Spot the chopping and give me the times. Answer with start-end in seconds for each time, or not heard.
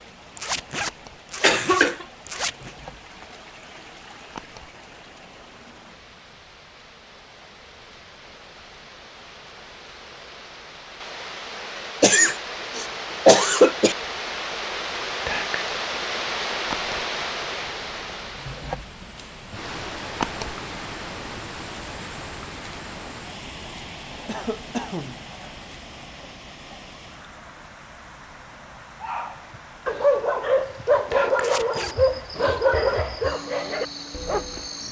not heard.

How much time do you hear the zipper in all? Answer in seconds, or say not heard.
3 s.